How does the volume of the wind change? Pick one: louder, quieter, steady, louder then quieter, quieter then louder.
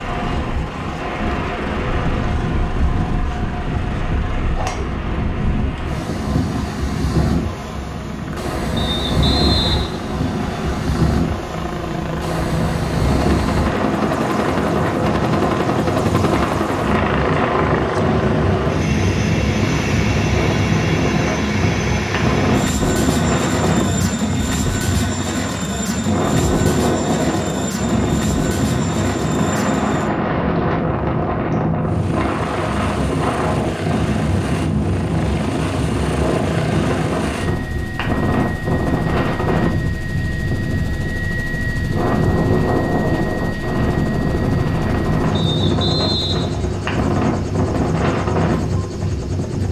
steady.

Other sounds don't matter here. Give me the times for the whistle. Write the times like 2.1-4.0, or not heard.
8.8-10.8, 45.3-47.0.